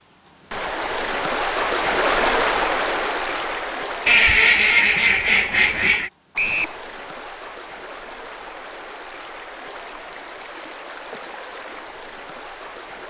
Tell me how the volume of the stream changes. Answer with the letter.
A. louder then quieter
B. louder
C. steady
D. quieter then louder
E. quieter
E.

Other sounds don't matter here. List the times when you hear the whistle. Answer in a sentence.
The whistle can be heard from 6.3 to 6.8 s.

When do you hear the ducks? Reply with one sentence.
You can hear the ducks from 4.0 to 6.1 s.